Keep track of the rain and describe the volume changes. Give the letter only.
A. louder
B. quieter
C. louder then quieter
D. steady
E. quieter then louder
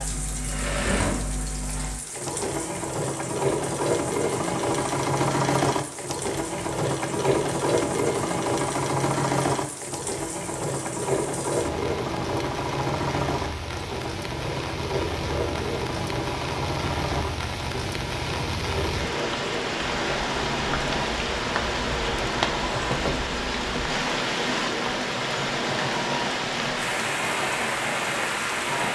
A.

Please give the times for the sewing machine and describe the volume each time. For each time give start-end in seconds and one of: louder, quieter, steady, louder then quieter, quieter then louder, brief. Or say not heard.
0.0-28.9 quieter.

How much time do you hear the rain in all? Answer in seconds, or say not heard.
29 s.